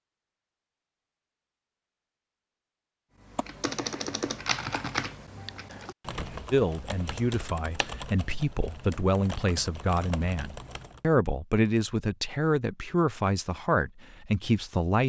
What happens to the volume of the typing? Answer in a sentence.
The volume of the typing goes down.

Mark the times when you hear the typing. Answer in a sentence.
The typing can be heard from 3.2 to 11.0 s.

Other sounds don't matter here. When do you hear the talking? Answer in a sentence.
You can hear the talking from 6.5 to 15.0 s.